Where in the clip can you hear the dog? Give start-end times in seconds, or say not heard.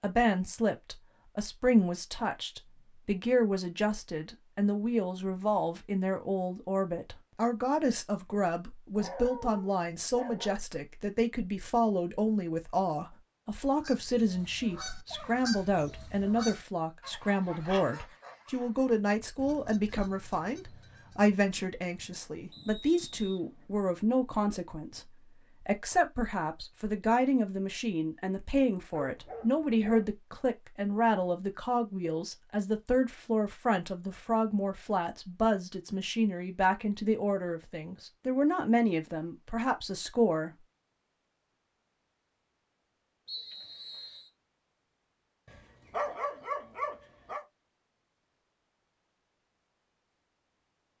8.9-10.6, 28.9-30.1, 45.5-47.5.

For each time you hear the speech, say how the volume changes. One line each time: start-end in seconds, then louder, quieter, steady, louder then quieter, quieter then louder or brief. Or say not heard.
0.0-40.6 steady.